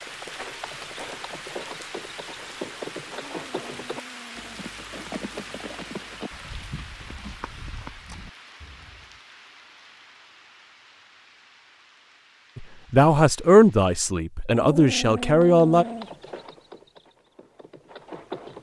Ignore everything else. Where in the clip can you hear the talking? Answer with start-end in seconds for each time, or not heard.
12.6-15.8.